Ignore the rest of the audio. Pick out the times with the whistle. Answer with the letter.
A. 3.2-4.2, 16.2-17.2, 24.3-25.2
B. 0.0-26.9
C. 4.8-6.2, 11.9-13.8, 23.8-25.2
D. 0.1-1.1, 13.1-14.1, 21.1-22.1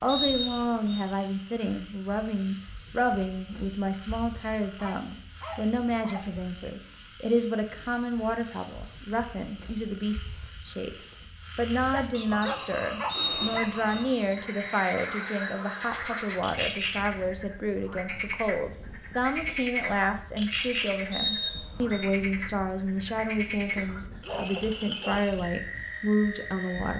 D.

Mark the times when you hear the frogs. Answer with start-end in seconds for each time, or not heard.
0.0-26.9.